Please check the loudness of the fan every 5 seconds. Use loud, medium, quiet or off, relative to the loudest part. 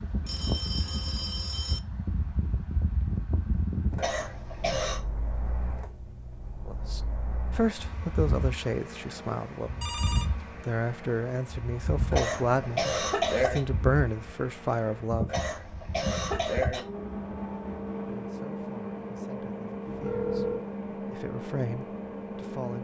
loud, medium, loud, loud, loud.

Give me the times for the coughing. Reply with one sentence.
The coughing can be heard from 4.0 to 5.0 s, from 12.1 to 13.6 s and from 15.2 to 16.8 s.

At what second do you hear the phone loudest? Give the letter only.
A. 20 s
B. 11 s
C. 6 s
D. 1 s
A.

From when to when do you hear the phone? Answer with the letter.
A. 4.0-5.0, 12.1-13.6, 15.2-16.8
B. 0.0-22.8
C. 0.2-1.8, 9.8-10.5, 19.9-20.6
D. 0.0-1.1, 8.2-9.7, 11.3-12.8
C.